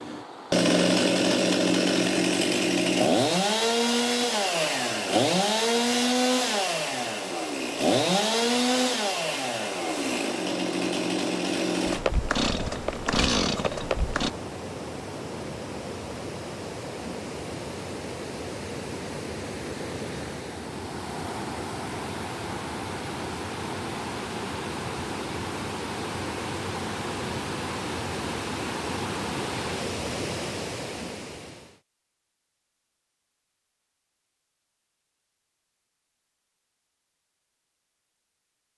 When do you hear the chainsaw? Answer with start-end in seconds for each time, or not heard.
0.0-14.3.